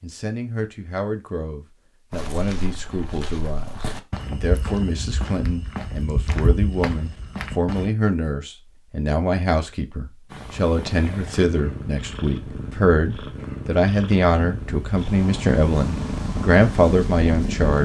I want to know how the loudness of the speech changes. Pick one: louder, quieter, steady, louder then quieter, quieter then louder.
louder.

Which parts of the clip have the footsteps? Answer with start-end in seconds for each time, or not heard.
2.1-7.9.